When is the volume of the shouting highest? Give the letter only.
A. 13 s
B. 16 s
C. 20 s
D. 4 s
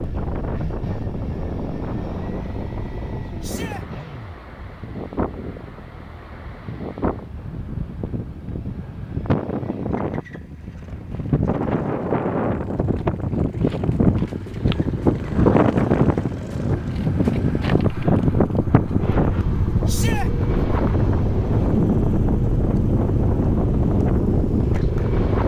C.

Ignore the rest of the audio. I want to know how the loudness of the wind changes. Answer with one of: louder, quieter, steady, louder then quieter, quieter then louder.
louder.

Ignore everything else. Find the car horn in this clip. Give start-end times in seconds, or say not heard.
not heard.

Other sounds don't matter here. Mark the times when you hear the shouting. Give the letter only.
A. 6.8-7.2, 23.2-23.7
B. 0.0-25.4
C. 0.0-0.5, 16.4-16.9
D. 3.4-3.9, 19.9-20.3
D.